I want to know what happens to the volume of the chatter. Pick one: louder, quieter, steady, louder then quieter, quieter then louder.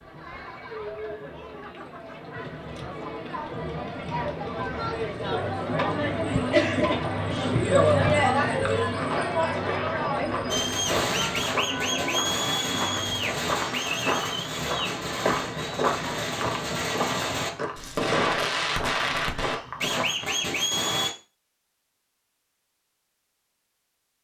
louder then quieter.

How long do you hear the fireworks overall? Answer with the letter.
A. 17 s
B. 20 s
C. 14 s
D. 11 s
D.